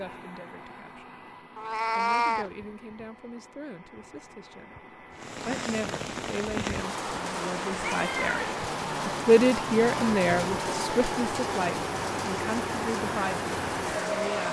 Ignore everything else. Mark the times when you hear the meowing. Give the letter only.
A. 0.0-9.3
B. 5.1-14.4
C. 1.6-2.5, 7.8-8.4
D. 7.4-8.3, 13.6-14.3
C.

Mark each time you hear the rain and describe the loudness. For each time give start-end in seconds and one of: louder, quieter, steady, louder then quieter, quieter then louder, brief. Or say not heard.
5.1-14.4 steady.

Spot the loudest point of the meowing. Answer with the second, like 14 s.
2 s.